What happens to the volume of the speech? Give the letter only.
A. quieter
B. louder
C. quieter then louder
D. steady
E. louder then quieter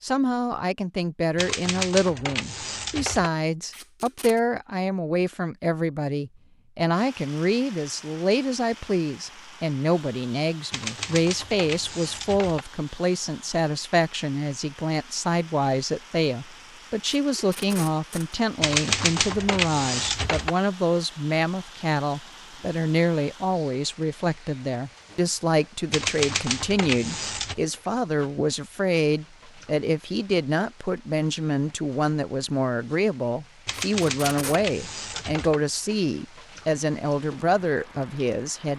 D.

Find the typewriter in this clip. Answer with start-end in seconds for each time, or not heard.
1.4-3.3, 10.7-12.7, 18.6-20.6, 25.9-27.6, 33.6-35.6.